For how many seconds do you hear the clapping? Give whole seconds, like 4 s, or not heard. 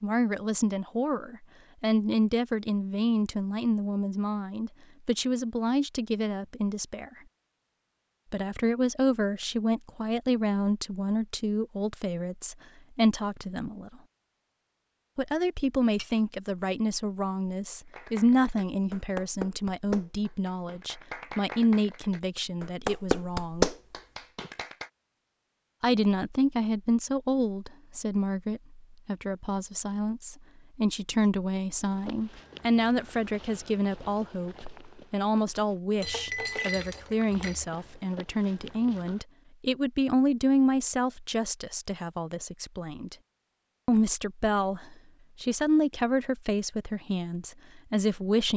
7 s.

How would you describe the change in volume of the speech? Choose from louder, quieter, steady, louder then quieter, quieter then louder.
steady.